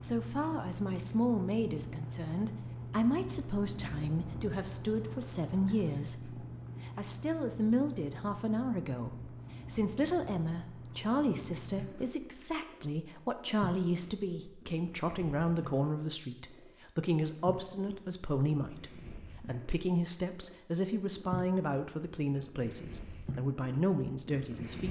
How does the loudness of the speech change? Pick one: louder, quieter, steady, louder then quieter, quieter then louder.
steady.